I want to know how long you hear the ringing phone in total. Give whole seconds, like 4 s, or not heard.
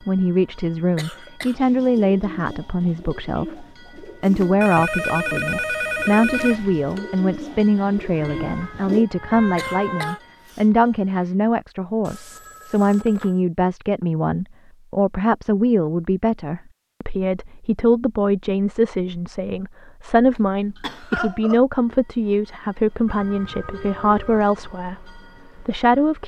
5 s.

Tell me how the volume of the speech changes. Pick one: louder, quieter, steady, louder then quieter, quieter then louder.
steady.